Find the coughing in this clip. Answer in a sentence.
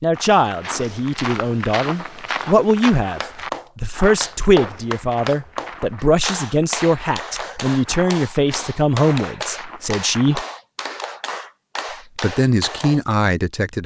You can't hear the coughing here.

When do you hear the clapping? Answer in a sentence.
You can hear the clapping from 3.0 to 13.0 s.